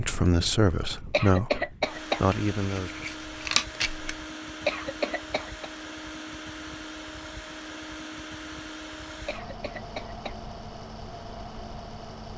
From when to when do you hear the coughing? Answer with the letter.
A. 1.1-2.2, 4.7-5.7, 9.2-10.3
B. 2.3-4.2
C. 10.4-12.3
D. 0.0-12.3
A.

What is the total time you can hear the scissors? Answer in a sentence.
The scissors can be heard for 2 seconds in total.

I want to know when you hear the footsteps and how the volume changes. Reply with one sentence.
You can't hear the footsteps here.